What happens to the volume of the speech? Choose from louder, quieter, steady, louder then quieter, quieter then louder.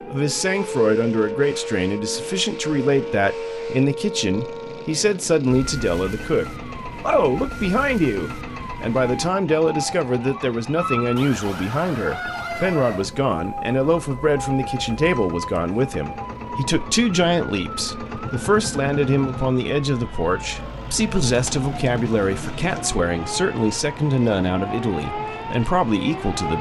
steady.